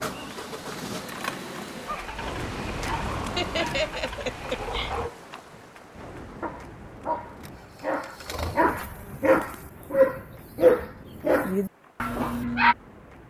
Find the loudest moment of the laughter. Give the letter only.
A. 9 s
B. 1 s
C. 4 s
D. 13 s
C.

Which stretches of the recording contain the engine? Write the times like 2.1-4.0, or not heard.
0.0-5.1, 7.2-9.7.